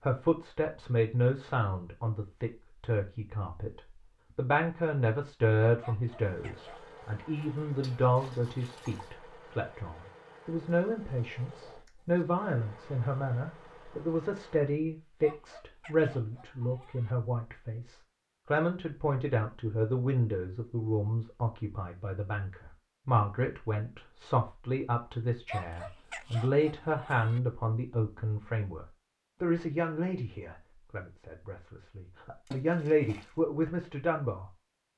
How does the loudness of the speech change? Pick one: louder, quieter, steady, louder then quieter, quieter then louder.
steady.